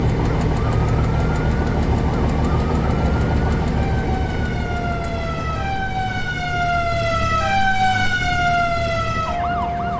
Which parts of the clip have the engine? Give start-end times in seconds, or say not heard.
0.0-9.9.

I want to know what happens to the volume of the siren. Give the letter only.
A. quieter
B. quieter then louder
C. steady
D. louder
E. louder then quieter
D.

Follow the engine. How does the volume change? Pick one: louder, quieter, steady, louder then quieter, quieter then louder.
quieter.